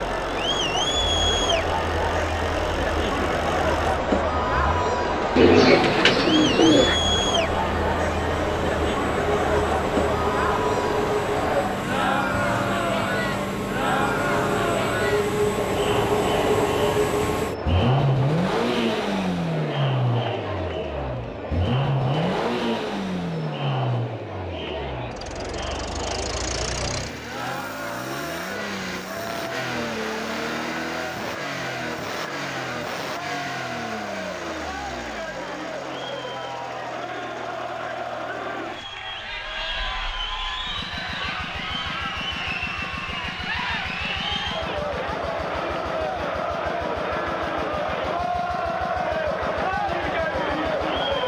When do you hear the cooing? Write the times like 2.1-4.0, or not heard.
5.3-7.0.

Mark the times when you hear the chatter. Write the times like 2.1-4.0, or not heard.
0.0-51.2.